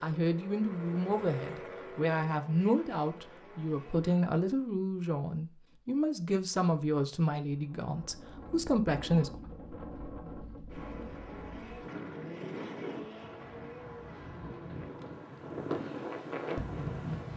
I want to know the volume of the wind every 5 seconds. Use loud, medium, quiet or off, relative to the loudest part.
off, medium, medium, loud.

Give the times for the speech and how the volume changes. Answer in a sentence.
The speech can be heard from 0.0 to 9.3 s, at a steady volume.